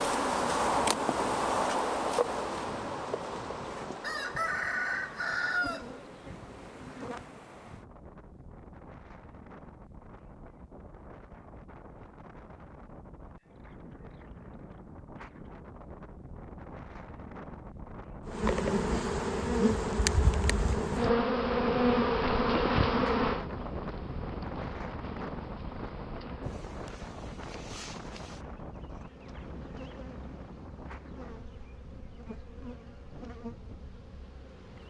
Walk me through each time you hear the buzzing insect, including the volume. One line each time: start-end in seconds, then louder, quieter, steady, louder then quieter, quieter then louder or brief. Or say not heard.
0.0-7.3 quieter
18.2-34.8 quieter.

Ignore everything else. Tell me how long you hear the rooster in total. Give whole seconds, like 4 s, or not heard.
3 s.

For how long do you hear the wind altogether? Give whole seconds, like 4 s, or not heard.
35 s.